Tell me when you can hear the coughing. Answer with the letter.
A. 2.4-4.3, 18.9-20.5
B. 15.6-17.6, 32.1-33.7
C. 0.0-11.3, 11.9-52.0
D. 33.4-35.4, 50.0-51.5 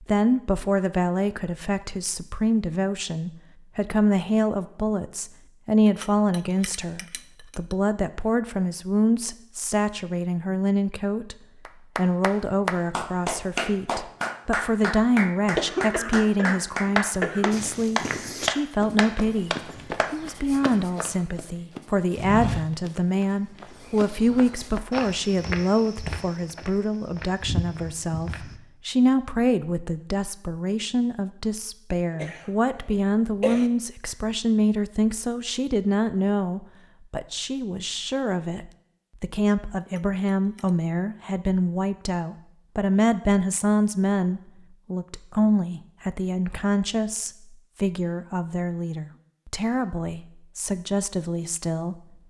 B.